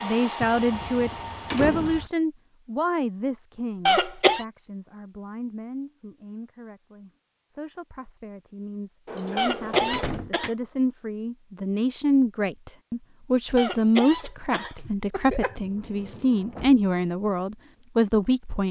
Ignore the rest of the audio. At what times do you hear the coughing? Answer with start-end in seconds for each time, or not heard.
3.9-4.5, 9.3-10.5, 13.6-15.6.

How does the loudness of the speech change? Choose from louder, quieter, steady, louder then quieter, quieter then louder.
quieter then louder.